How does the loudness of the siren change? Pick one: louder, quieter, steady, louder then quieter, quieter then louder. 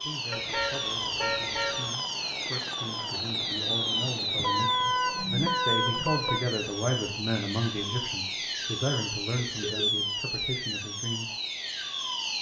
steady.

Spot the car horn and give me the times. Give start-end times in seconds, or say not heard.
0.3-1.9, 4.3-6.4, 9.4-9.9.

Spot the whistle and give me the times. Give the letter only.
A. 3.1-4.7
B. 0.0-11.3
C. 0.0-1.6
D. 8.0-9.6
A.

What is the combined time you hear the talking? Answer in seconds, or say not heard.
11 s.